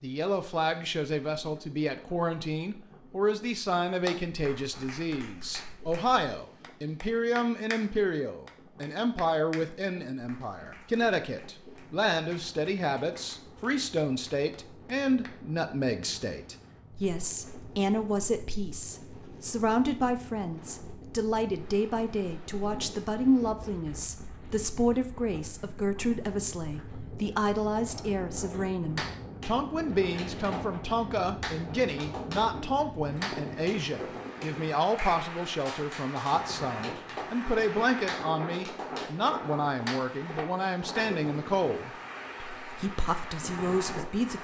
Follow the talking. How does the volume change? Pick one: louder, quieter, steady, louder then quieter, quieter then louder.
steady.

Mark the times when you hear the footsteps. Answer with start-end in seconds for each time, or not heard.
not heard.